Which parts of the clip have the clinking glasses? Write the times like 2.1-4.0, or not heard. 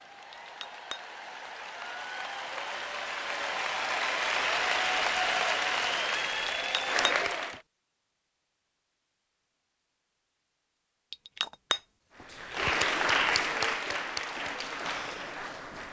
0.3-1.0, 6.5-7.5, 11.1-12.2.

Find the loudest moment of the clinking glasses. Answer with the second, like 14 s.
12 s.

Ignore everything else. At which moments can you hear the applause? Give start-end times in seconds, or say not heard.
0.0-7.6, 12.2-15.8.